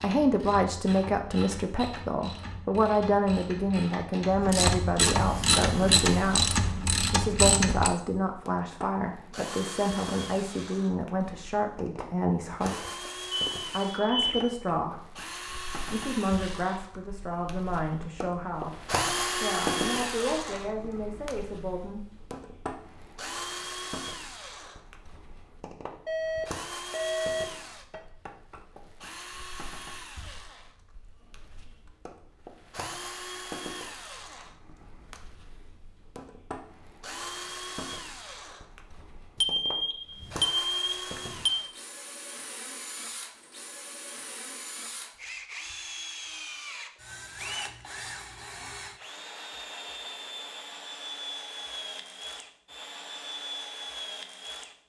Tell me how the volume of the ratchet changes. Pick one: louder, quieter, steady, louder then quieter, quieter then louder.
louder.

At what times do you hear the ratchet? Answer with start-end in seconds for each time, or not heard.
0.0-7.9.